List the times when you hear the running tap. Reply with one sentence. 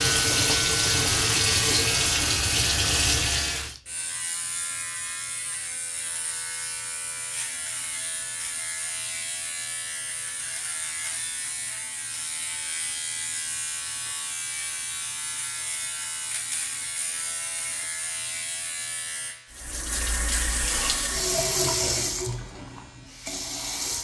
The running tap can be heard from 0.0 to 3.8 s and from 19.5 to 24.0 s.